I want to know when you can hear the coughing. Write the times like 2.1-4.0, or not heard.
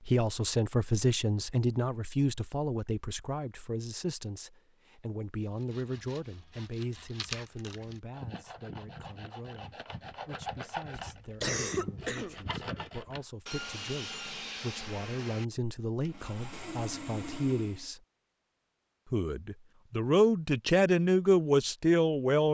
10.9-12.4.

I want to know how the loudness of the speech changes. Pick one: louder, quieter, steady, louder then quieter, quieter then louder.
quieter then louder.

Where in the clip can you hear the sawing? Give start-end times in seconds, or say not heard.
5.4-17.9.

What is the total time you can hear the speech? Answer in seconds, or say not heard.
21 s.